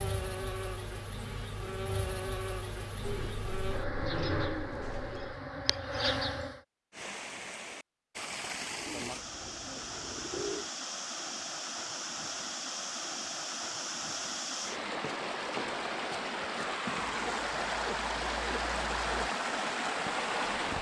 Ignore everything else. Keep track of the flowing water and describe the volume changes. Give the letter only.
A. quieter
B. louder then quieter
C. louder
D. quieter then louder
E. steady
C.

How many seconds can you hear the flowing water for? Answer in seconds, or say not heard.
14 s.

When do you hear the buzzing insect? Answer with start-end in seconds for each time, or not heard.
0.0-6.5.